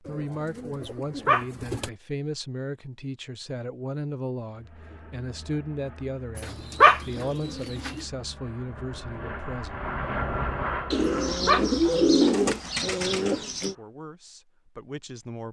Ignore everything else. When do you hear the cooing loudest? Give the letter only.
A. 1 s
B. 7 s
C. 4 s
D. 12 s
D.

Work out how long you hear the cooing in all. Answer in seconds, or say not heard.
6 s.